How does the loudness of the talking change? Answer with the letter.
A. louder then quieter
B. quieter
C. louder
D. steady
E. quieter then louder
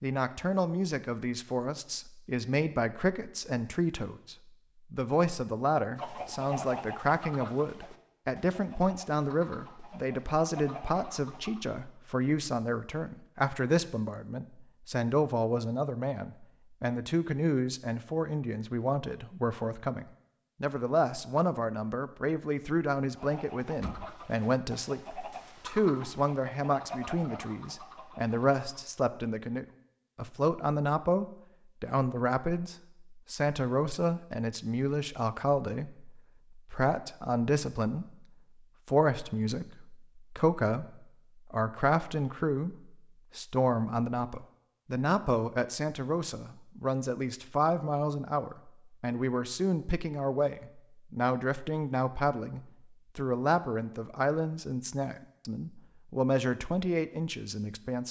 D.